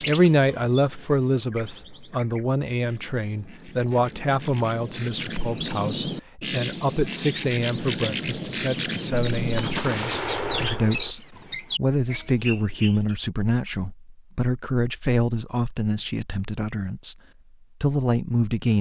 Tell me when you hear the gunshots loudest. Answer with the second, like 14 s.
10 s.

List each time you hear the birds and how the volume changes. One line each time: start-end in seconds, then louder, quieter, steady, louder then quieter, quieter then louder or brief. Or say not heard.
0.0-13.2 louder.